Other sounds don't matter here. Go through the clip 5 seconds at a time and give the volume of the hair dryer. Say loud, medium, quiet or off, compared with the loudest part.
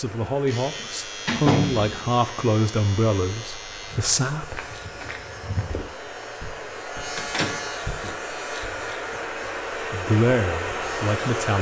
quiet, medium, loud.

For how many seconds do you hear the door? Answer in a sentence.
You can hear the door for 2 seconds altogether.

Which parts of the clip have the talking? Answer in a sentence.
You can hear the talking from 0.0 to 4.7 s and from 9.9 to 11.5 s.